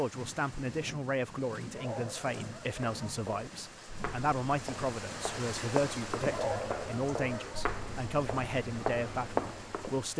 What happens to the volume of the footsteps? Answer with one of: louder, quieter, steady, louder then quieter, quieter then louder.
louder.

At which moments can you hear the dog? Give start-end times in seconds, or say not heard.
1.6-3.1, 6.2-7.7.